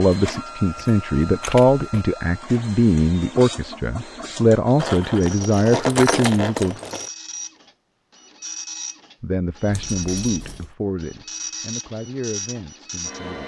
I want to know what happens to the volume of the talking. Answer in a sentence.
The loudness of the talking goes down.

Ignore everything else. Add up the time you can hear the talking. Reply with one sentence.
You can hear the talking for 11 seconds altogether.